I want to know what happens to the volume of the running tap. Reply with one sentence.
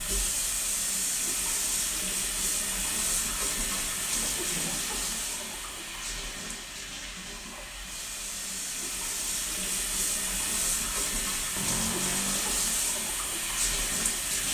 The volume of the running tap goes down, then up.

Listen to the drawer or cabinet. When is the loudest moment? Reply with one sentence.
The loudest moment of the drawer or cabinet is at 12 seconds.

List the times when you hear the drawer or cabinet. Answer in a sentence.
The drawer or cabinet can be heard from 3.7 to 4.8 s and from 11.6 to 12.7 s.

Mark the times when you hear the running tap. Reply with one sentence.
The running tap can be heard from 0.0 to 14.4 s.